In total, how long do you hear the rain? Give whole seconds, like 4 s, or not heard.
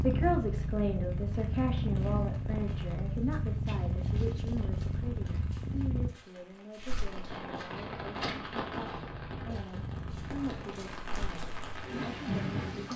13 s.